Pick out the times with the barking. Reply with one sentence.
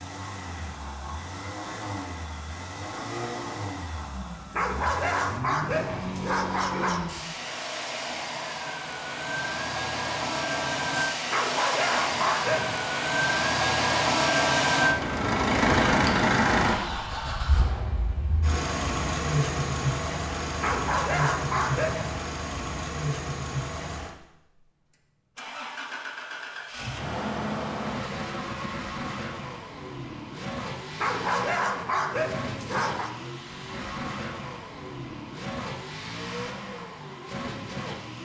The barking can be heard from 4.5 to 7.1 s, from 11.3 to 12.8 s, from 20.6 to 22.2 s and from 30.9 to 33.1 s.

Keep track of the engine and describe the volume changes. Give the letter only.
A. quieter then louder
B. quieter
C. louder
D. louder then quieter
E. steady
D.